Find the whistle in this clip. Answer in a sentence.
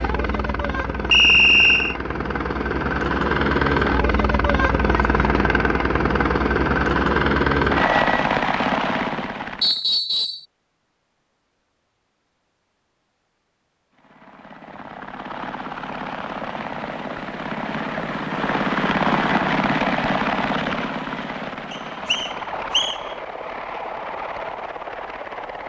You can hear the whistle from 1.1 to 1.9 s, from 9.6 to 10.4 s and from 21.7 to 23.0 s.